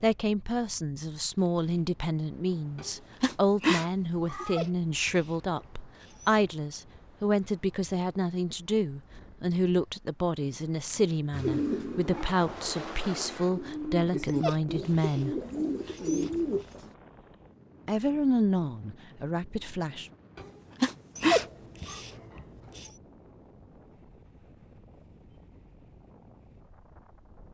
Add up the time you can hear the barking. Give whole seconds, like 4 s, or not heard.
6 s.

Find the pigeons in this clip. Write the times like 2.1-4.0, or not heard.
11.3-16.9.